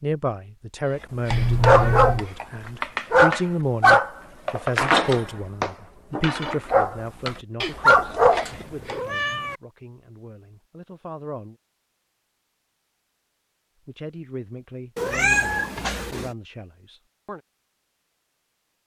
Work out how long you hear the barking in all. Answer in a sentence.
The barking can be heard for 8 seconds in total.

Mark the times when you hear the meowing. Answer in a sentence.
The meowing can be heard from 1.3 to 2.2 s, from 8.4 to 9.6 s and from 14.9 to 16.3 s.